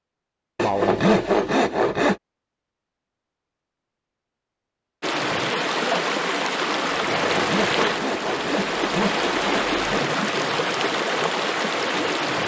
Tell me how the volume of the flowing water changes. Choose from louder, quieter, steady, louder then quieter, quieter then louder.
steady.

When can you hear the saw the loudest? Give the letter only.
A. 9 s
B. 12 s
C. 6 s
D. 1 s
D.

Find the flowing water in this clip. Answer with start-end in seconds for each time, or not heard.
5.0-12.4.